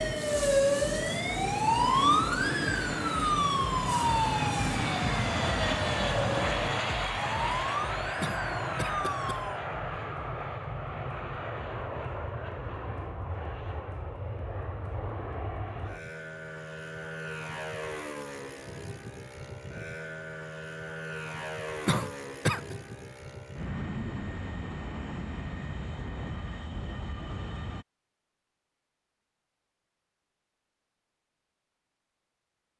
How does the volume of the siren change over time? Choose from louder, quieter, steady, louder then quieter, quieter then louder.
quieter.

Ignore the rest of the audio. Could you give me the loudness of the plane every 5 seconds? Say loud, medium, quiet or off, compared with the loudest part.
loud, loud, medium, medium, medium, medium, off.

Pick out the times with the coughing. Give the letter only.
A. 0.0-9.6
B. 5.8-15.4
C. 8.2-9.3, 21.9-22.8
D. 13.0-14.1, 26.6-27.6
C.